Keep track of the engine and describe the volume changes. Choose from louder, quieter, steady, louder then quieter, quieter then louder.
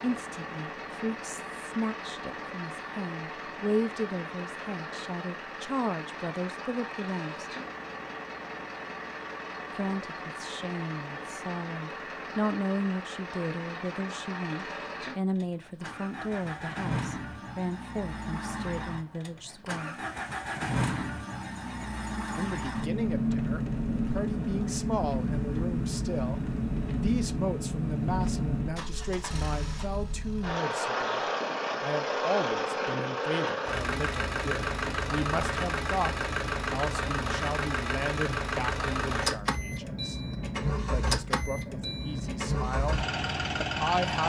louder.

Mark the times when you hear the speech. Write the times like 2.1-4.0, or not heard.
0.0-7.5, 9.8-19.9, 22.4-31.2, 31.8-40.1, 40.9-44.2.